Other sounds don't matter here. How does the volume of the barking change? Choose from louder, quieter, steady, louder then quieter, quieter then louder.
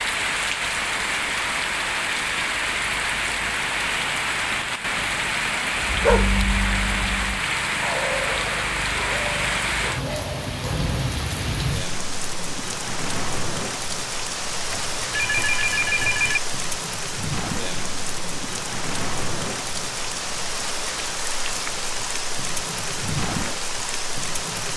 quieter.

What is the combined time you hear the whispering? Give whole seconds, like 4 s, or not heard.
not heard.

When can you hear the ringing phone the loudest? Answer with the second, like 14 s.
16 s.